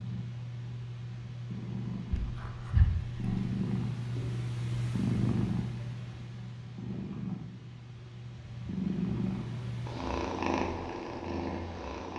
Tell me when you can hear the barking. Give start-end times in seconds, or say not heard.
2.0-3.5.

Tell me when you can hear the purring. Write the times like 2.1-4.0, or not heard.
0.0-12.1.